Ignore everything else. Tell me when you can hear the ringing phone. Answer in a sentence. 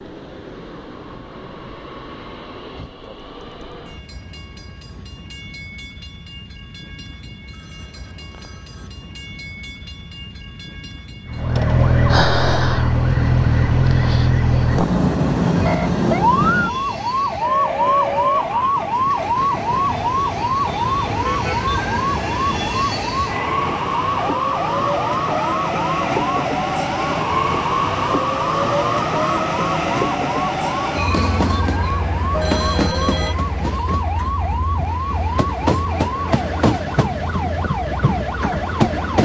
The ringing phone can be heard from 7.5 to 8.9 s and from 32.3 to 33.4 s.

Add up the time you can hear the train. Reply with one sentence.
The train can be heard for 39 seconds in total.